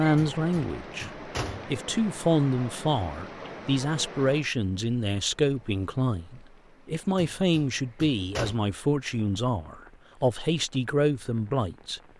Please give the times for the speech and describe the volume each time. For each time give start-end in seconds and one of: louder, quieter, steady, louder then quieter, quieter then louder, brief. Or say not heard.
0.0-12.0 steady.